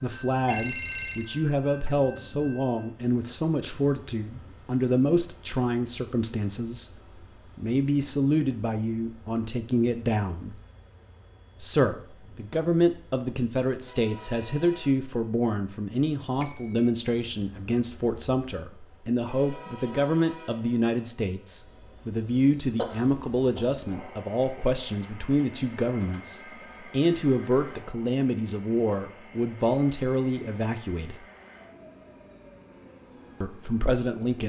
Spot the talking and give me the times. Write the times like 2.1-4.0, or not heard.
0.0-6.9, 7.5-10.6, 11.6-31.2, 33.4-34.4.